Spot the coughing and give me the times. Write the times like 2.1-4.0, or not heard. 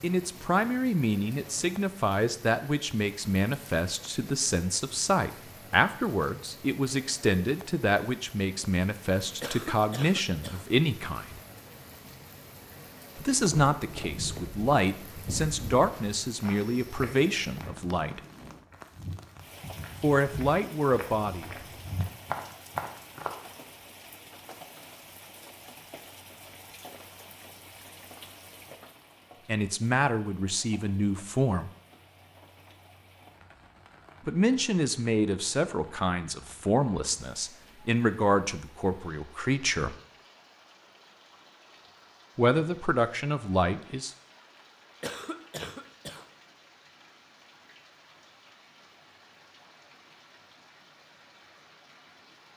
9.4-10.7, 45.0-46.2.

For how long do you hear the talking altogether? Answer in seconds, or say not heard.
28 s.